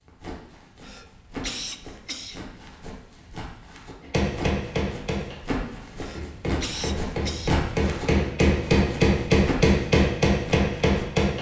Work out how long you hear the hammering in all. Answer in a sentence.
You can hear the hammering for 7 seconds altogether.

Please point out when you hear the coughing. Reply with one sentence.
You can hear the coughing from 0.8 to 2.5 s and from 6.0 to 7.7 s.